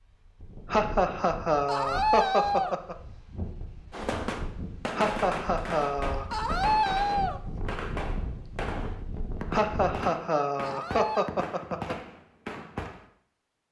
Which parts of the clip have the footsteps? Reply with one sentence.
You can't hear the footsteps here.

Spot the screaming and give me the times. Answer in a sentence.
The screaming can be heard from 1.6 to 2.8 s, from 6.3 to 7.4 s and from 10.6 to 11.3 s.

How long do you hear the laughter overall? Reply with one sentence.
The laughter can be heard for 6 seconds in total.